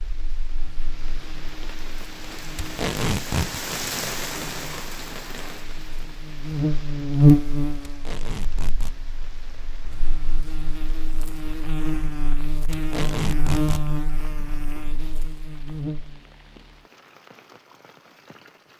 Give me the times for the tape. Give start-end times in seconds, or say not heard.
2.5-3.6, 7.8-8.9, 12.7-13.8.